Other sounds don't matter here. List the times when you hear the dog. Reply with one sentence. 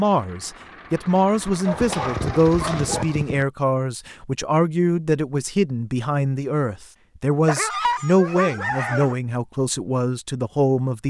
The dog can be heard from 1.6 to 3.5 s and from 7.5 to 9.2 s.